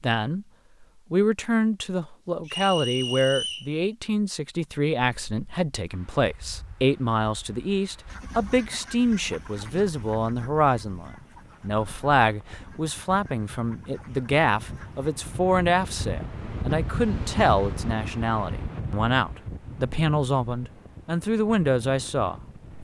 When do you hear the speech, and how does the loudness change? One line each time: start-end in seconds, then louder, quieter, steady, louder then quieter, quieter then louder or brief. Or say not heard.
0.0-0.5 brief
1.1-22.4 steady.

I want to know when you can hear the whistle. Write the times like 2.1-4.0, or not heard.
2.5-3.7.